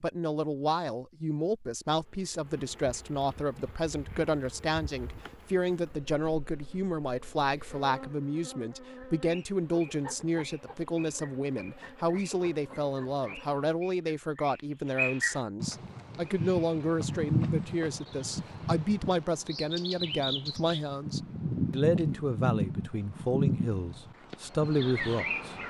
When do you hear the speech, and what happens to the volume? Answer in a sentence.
The speech can be heard from 0.0 to 25.6 s, at a steady volume.